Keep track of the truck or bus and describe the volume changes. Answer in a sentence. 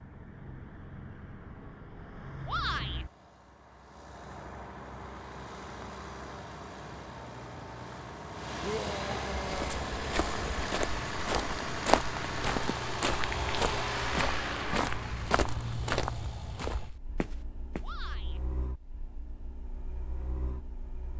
The volume of the truck or bus goes up, then down.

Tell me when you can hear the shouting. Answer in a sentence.
The shouting can be heard from 2.5 to 3.0 s, from 8.6 to 9.9 s and from 17.8 to 18.4 s.